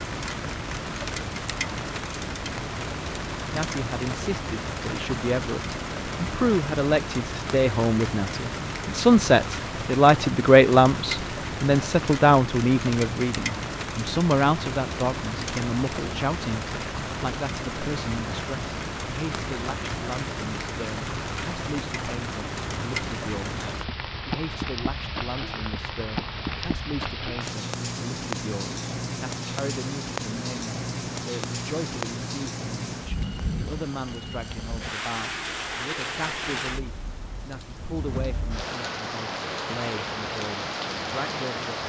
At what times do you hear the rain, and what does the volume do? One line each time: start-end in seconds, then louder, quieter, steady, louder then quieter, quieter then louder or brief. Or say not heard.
0.0-41.8 steady.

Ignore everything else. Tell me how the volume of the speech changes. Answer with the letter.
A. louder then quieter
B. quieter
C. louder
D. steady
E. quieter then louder
B.